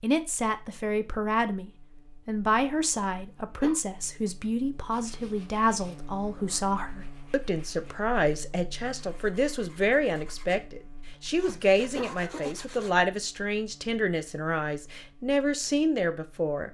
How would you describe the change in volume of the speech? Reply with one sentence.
The volume of the speech stays about the same.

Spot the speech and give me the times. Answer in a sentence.
The speech can be heard from 0.0 to 16.6 s.